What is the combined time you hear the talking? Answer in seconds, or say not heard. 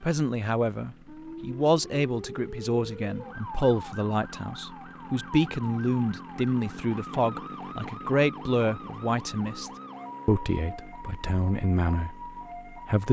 13 s.